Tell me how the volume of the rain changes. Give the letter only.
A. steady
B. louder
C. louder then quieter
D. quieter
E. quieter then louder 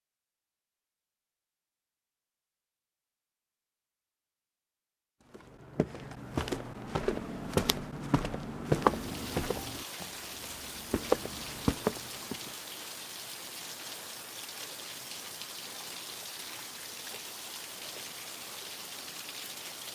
A.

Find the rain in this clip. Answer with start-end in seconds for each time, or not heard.
8.8-19.8.